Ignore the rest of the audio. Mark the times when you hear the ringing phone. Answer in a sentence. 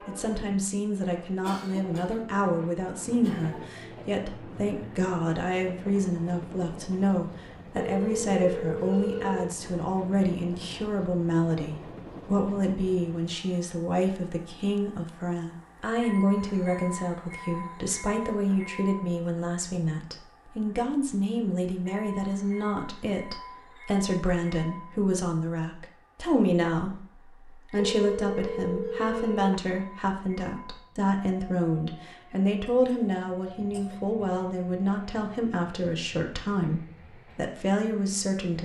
You can hear the ringing phone from 7.8 to 9.6 s and from 27.8 to 29.6 s.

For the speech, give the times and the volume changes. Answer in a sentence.
You can hear the speech from 0.1 to 38.5 s, at a steady volume.